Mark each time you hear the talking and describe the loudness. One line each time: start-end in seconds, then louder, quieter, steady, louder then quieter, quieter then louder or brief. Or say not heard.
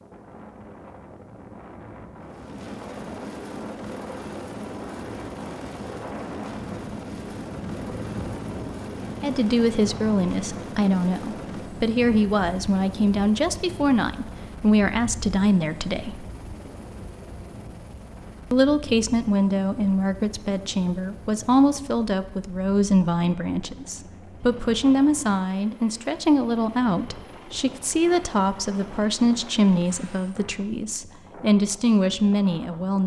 9.2-16.2 steady
18.5-33.0 steady.